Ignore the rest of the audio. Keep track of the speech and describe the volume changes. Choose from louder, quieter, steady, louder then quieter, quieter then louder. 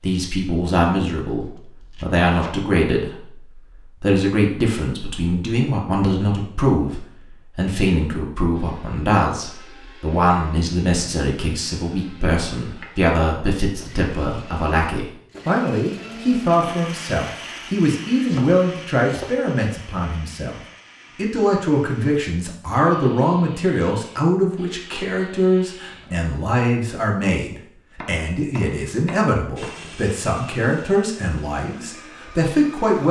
steady.